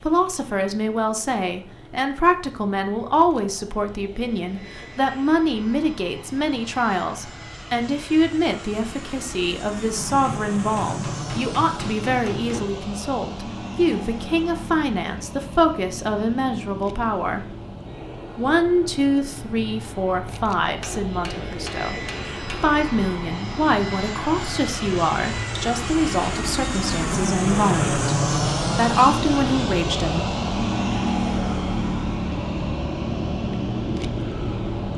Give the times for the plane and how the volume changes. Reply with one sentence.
The plane can be heard from 0.0 to 34.9 s, getting louder.